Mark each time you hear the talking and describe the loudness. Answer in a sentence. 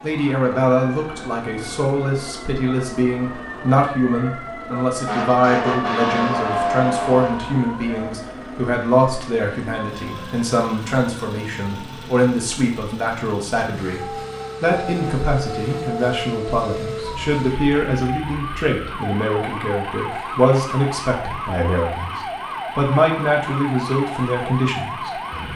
The talking can be heard from 0.0 to 22.1 s, at a steady volume; and briefly from 22.8 to 25.5 s.